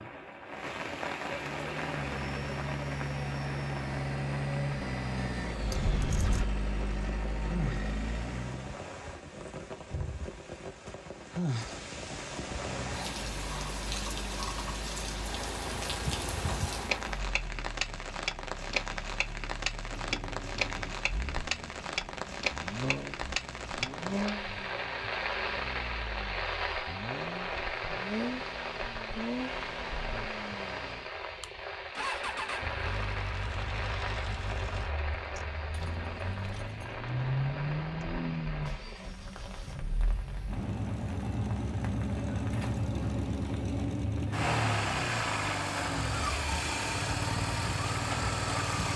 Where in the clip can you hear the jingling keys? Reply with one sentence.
You can hear the jingling keys from 5.7 to 6.5 s, from 19.9 to 21.1 s and from 35.7 to 37.0 s.